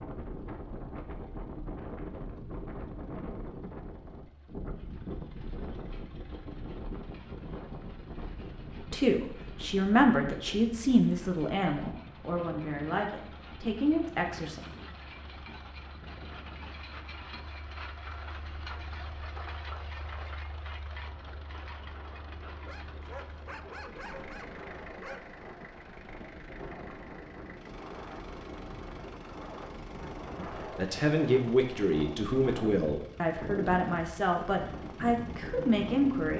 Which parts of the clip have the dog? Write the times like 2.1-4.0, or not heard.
22.6-25.3.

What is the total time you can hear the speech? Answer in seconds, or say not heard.
12 s.